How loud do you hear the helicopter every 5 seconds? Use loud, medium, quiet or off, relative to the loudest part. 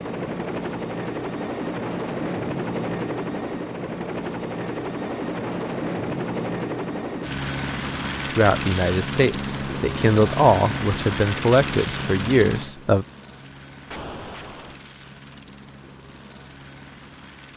loud, loud, loud, quiet.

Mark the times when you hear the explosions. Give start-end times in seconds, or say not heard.
13.9-14.8.